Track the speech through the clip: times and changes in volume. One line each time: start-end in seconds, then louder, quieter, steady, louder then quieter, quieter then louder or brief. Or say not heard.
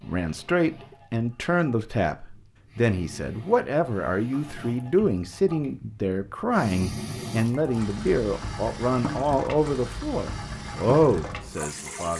0.0-12.1 steady.